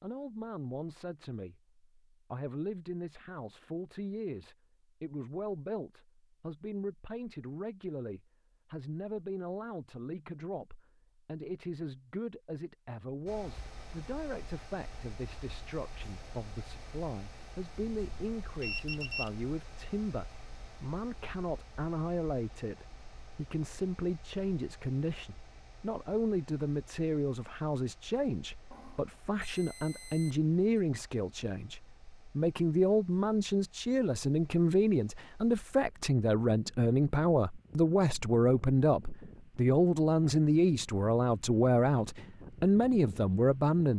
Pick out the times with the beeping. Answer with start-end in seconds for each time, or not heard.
17.9-19.3, 28.7-30.8.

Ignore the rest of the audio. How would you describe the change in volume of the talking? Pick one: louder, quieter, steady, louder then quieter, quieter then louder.
louder.